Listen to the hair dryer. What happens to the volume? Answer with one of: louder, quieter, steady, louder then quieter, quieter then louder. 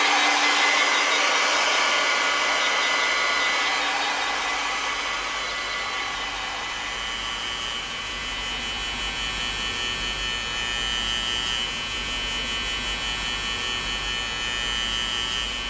quieter.